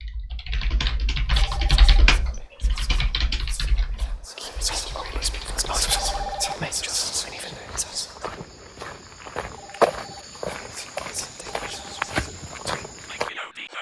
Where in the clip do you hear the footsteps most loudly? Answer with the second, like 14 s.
10 s.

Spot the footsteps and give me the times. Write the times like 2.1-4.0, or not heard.
5.3-13.3.